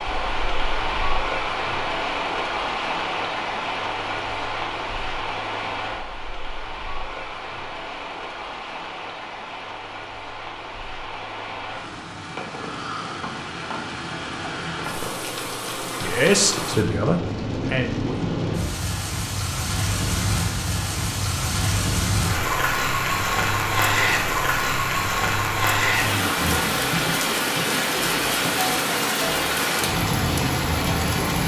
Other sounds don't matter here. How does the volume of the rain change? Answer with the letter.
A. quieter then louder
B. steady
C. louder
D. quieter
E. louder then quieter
A.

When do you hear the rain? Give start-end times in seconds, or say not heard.
0.0-31.4.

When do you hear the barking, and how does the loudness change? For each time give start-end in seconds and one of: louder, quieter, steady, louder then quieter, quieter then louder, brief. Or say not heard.
not heard.